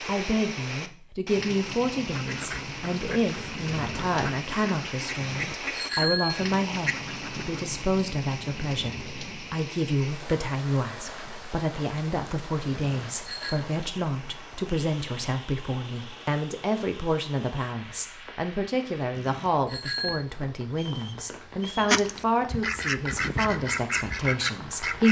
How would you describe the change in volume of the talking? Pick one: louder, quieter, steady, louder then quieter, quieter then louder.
steady.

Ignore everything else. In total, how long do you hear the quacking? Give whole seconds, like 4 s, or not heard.
9 s.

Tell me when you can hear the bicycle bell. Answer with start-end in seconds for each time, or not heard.
5.2-6.5, 12.7-13.6, 19.1-20.2.